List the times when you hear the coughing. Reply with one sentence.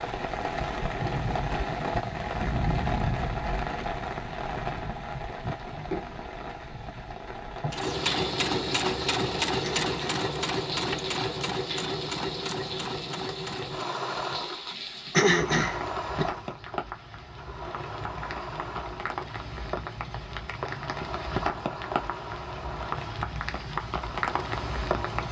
The coughing can be heard from 9.6 to 10.2 s and from 15.1 to 16.2 s.